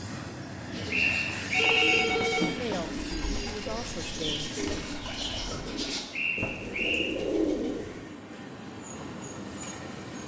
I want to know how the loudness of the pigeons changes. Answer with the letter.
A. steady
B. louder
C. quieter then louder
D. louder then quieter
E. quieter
B.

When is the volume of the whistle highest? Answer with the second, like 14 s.
2 s.